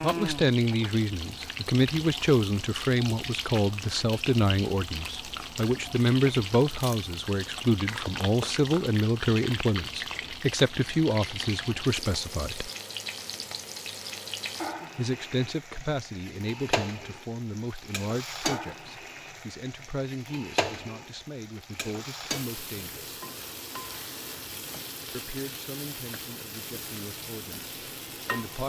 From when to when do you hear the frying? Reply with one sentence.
You can hear the frying from 0.0 to 28.6 s.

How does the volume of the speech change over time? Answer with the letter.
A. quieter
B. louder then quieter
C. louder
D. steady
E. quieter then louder
A.